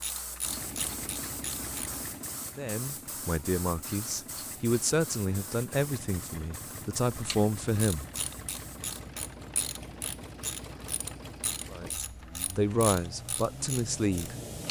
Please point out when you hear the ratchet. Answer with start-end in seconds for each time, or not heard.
0.0-2.0, 7.1-14.6.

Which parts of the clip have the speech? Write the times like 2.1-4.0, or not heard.
2.5-8.1, 11.7-14.3.